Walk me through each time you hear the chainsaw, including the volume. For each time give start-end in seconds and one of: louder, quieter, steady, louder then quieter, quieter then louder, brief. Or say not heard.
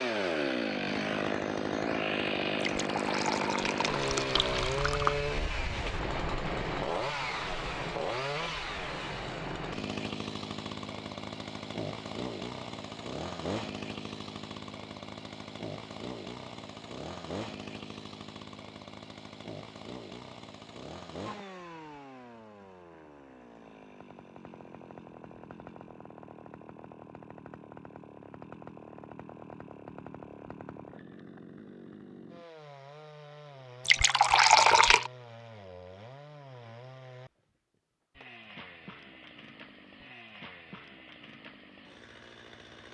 0.0-42.8 quieter.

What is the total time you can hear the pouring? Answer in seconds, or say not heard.
4 s.